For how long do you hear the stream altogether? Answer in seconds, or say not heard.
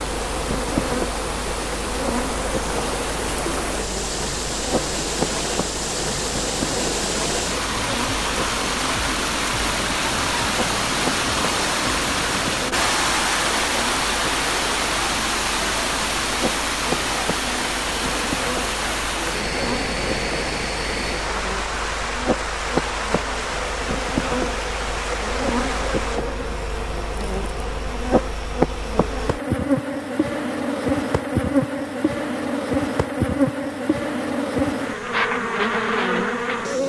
26 s.